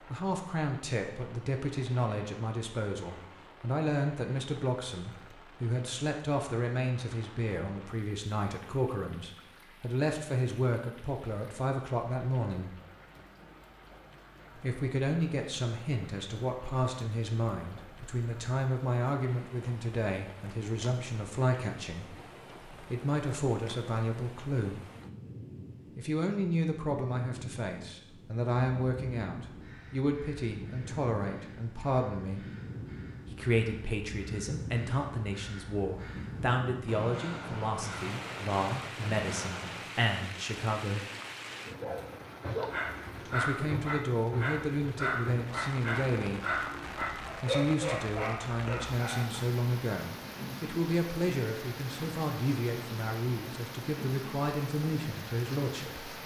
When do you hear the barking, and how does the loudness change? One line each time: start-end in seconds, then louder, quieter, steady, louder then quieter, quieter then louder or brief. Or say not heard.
41.6-49.5 steady.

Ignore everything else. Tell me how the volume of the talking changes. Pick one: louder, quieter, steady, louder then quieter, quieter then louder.
steady.